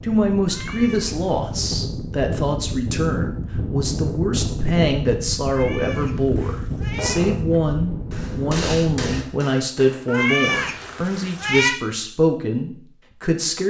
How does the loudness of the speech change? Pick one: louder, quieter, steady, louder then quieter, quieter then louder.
steady.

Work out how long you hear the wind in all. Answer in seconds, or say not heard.
9 s.